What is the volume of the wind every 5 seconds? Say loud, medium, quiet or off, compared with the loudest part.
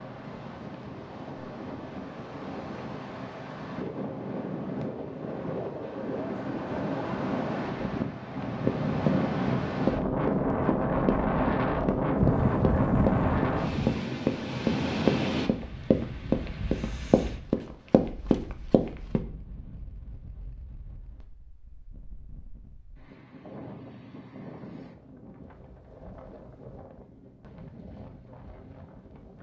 medium, loud, loud, medium, quiet, quiet.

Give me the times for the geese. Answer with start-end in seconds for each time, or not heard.
12.2-14.1.